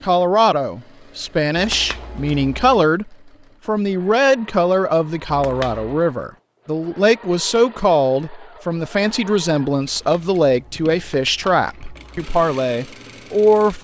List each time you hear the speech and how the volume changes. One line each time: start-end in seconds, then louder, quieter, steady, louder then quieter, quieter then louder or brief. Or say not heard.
0.0-13.7 steady.